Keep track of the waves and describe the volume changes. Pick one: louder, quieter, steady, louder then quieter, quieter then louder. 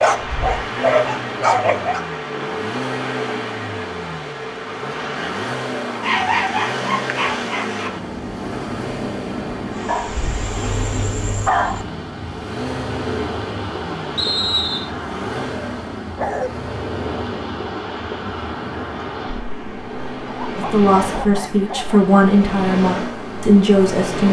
steady.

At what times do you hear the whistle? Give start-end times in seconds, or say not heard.
14.2-14.9.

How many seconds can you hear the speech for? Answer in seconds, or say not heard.
4 s.